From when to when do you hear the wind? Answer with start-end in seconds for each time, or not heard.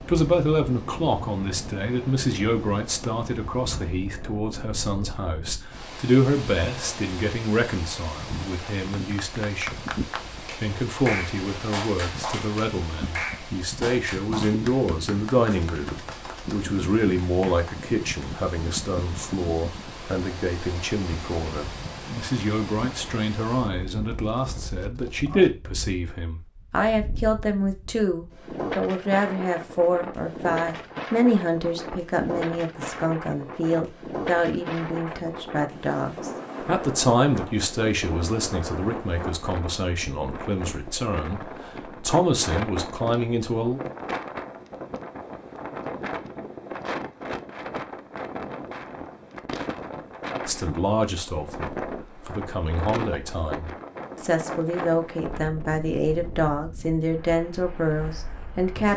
0.0-58.9.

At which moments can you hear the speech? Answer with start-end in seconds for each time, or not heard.
0.1-9.8, 10.6-43.8, 50.5-58.9.